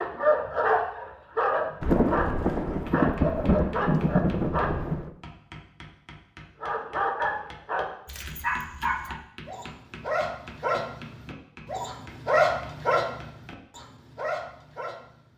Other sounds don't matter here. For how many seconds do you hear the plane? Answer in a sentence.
You can't hear the plane here.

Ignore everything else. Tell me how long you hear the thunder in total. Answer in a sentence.
You can hear the thunder for 3 seconds altogether.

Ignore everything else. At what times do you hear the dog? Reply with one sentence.
The dog can be heard from 0.0 to 4.8 s and from 6.6 to 15.3 s.